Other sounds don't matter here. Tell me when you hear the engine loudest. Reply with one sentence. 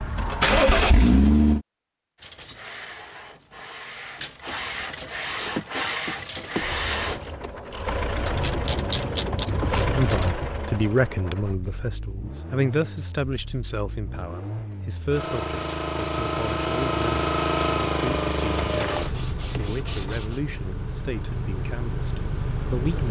The loudest moment of the engine is at 1 second.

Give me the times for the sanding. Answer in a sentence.
You can hear the sanding from 2.2 to 7.2 s and from 15.3 to 20.4 s.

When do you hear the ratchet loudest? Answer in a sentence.
The loudest moment of the ratchet is at 9 seconds.